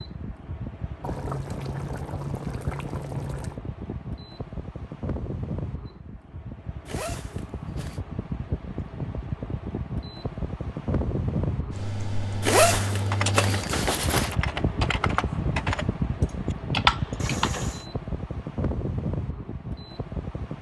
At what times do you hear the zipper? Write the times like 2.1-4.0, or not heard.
6.8-8.0, 12.4-14.3.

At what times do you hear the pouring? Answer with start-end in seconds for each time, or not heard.
1.0-3.6, 17.1-17.9.